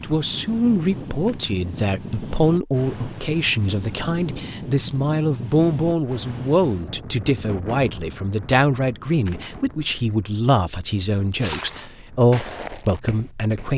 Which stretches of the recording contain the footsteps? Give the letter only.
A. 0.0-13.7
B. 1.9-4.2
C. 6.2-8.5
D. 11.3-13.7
D.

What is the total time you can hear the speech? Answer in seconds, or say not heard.
14 s.